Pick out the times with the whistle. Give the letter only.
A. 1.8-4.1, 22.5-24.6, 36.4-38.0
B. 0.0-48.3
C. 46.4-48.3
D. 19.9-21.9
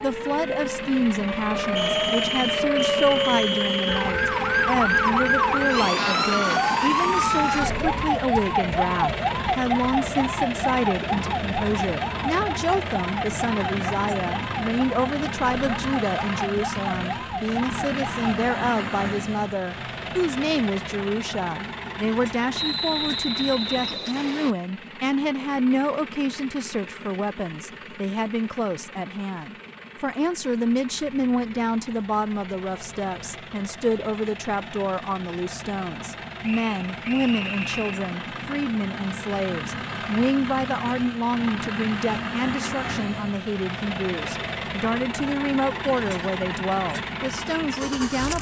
A.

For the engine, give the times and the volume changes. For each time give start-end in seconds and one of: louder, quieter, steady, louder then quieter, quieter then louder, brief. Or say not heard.
0.0-48.3 quieter then louder.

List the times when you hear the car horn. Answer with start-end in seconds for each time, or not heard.
3.9-5.8.